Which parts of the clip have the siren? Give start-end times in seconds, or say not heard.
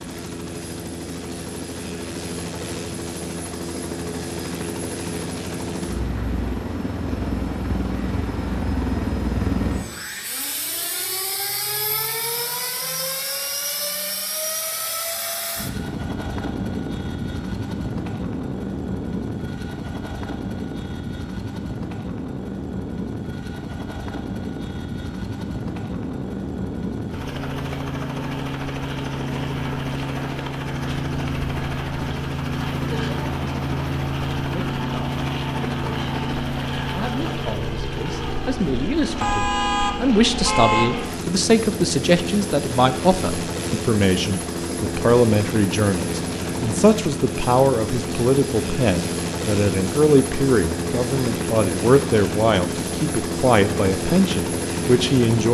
not heard.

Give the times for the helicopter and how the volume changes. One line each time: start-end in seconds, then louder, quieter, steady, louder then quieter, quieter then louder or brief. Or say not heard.
0.0-55.4 steady.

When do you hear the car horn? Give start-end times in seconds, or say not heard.
39.2-40.9.